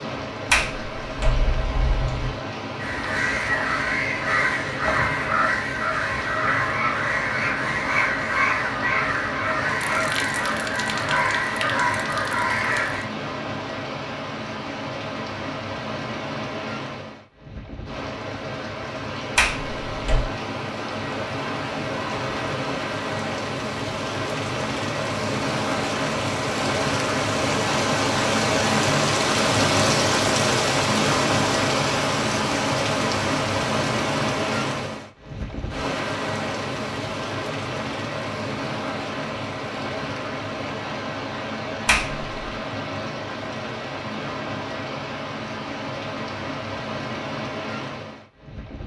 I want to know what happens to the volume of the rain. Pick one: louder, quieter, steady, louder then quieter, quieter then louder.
louder then quieter.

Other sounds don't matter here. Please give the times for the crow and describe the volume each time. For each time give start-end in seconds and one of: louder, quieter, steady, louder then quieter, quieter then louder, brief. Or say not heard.
2.8-13.1 steady.